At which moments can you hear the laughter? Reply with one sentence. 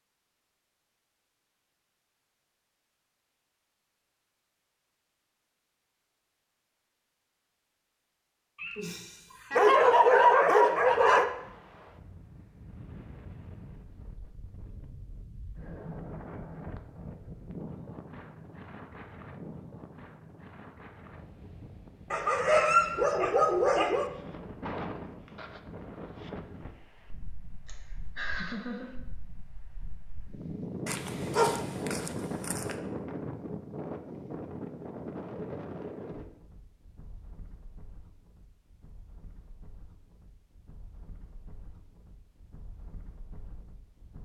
The laughter can be heard from 8.6 to 9.8 s and from 27.6 to 28.9 s.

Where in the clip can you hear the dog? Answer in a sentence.
The dog can be heard from 9.6 to 11.2 s, from 22.1 to 24.1 s and from 30.9 to 32.8 s.